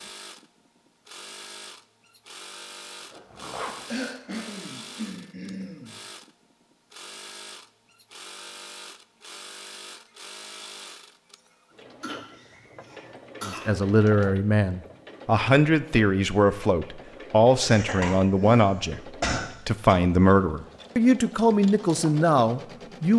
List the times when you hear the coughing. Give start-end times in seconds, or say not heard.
3.9-6.0, 12.0-13.6, 17.6-19.4.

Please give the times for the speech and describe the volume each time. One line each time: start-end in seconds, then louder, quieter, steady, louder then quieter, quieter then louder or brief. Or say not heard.
13.4-23.1 steady.